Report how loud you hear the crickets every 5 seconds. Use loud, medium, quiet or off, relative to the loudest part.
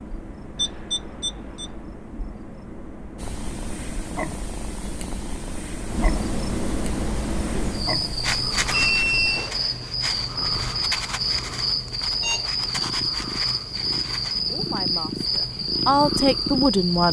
quiet, loud, loud, loud.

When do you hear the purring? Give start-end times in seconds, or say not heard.
3.1-17.0.